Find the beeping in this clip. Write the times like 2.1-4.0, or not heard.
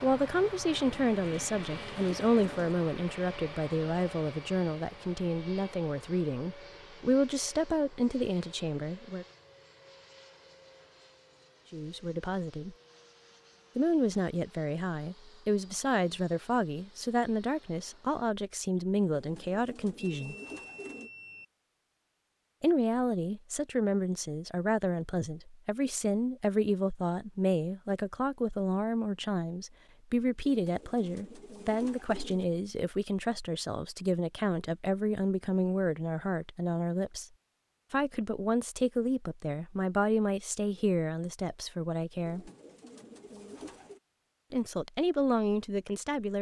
19.9-21.4.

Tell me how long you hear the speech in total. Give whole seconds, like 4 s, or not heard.
38 s.